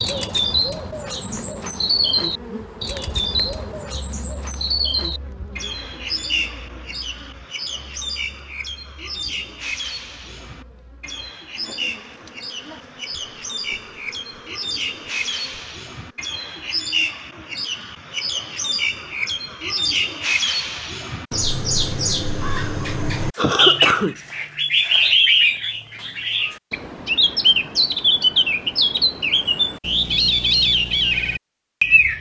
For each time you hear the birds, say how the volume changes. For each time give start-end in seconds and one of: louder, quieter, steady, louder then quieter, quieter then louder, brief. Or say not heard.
0.0-32.1 quieter then louder.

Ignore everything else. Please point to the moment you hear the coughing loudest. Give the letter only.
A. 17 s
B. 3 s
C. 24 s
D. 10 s
C.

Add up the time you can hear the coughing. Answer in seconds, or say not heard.
2 s.